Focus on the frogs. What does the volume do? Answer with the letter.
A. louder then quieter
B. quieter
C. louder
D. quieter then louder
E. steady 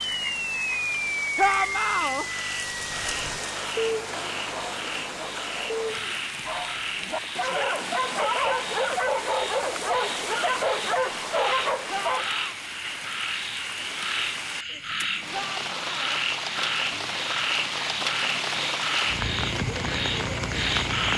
C.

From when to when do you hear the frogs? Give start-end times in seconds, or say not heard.
0.0-21.1.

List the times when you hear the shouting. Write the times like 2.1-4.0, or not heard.
1.4-2.2, 11.8-12.6, 15.3-16.2.